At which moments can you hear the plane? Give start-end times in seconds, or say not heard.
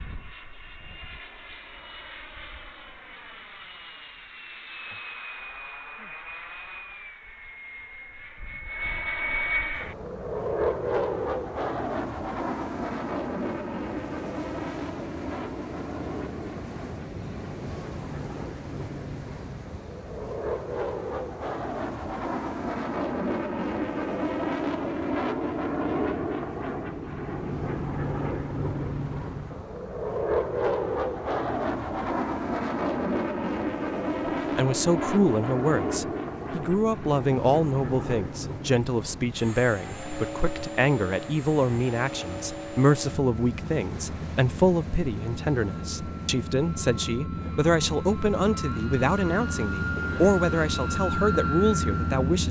0.0-52.4.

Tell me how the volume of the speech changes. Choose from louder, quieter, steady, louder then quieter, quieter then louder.
steady.